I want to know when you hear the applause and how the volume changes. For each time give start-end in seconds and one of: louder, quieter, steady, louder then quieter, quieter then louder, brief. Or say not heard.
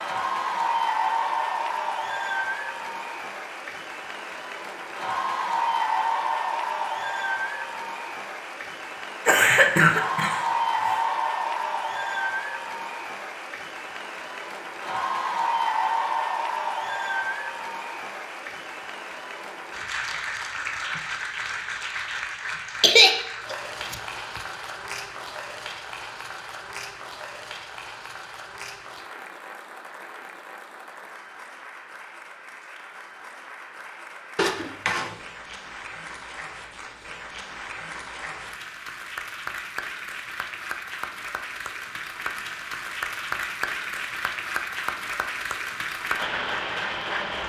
0.0-47.4 quieter then louder.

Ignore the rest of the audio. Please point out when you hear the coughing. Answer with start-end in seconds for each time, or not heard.
9.2-10.9, 22.8-24.4, 34.4-35.1.